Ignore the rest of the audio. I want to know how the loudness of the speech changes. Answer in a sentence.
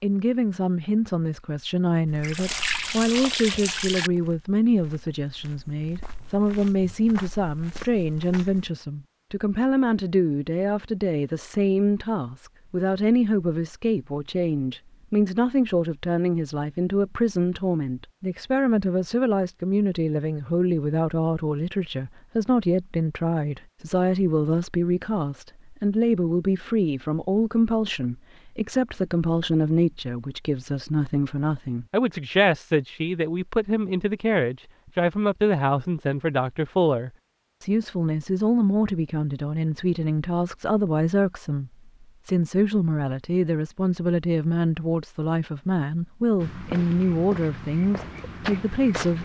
The volume of the speech stays about the same.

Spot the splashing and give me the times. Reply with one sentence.
You can hear the splashing from 2.2 to 4.1 s.